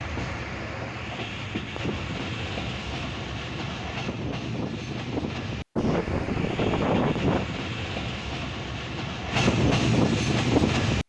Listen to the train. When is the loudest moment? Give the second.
10 s.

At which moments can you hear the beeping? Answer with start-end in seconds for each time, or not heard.
5.8-7.5.